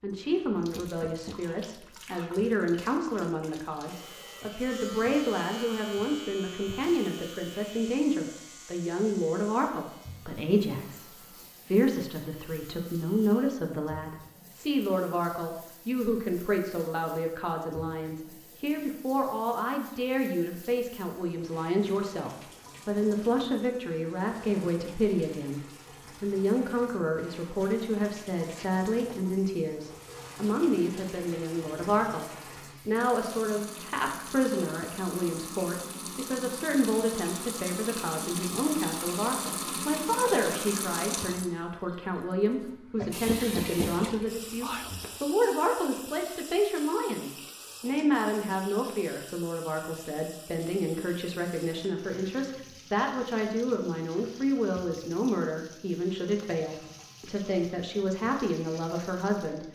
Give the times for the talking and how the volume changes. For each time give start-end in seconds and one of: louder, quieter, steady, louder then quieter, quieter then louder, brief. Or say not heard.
0.0-25.6 steady
26.2-59.6 steady.